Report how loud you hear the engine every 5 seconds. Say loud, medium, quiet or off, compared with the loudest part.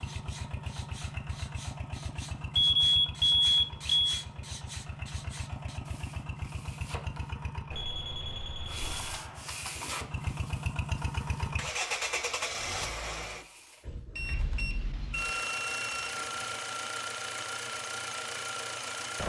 medium, medium, loud, loud.